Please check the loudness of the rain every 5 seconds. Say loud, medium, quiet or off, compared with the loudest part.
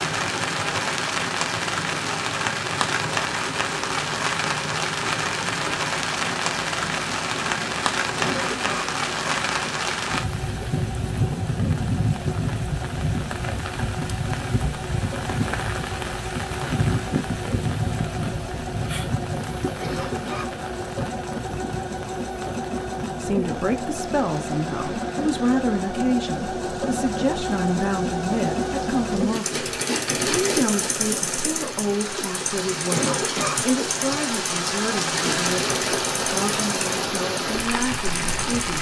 loud, loud, loud, loud, quiet, quiet, medium, loud.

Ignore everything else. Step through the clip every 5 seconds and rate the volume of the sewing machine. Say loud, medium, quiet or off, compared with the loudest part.
medium, medium, medium, medium, loud, loud, loud, loud.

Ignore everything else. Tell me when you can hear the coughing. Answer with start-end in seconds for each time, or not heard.
8.2-8.9, 19.8-20.5, 32.9-33.6.